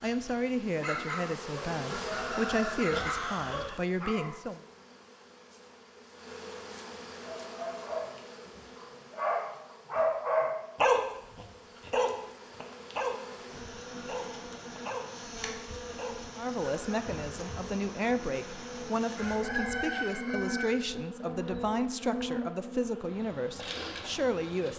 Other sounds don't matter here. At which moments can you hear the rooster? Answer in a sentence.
The rooster can be heard from 1.9 to 3.8 s and from 19.1 to 21.0 s.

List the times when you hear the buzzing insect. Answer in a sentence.
You can hear the buzzing insect from 0.1 to 24.7 s.